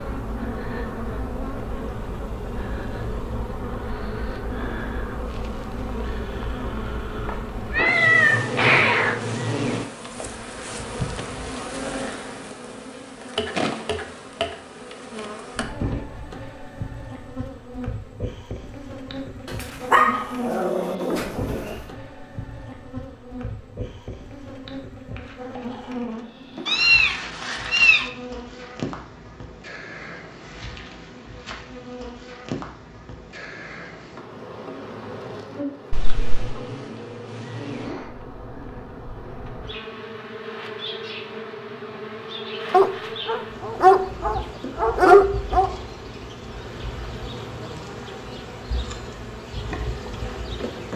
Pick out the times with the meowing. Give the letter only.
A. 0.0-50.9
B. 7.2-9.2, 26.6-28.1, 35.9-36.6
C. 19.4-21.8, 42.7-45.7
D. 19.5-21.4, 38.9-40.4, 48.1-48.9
B.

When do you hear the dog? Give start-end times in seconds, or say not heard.
19.4-21.8, 42.7-45.7.